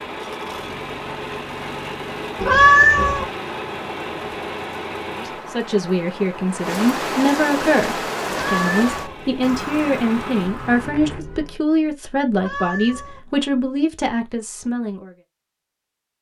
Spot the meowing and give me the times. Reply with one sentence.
You can hear the meowing from 2.4 to 3.2 s, from 8.4 to 9.2 s and from 12.3 to 13.2 s.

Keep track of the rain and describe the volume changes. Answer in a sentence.
The volume of the rain goes up, then down.